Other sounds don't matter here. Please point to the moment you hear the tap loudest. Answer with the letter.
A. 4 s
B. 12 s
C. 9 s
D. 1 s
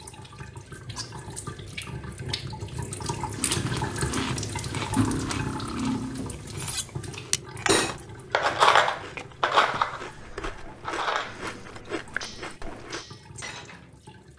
A.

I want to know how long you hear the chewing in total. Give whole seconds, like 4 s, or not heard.
10 s.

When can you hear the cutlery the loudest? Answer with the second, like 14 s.
9 s.